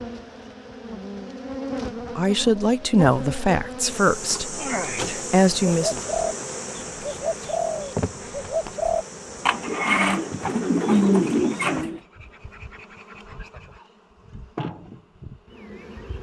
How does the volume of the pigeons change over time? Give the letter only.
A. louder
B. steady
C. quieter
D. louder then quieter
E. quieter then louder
A.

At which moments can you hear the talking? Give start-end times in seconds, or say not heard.
2.1-6.0.